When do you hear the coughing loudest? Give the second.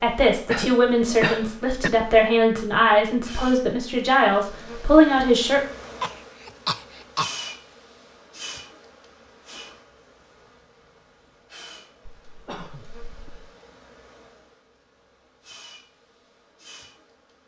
1 s.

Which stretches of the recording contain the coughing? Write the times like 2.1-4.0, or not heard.
0.5-1.9, 6.0-7.5, 12.1-13.4.